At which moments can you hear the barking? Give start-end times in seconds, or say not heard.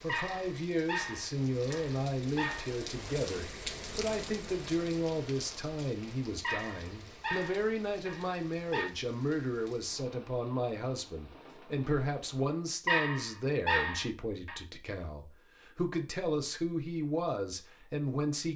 0.1-2.7, 6.4-8.9, 12.8-14.6.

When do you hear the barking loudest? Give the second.
13 s.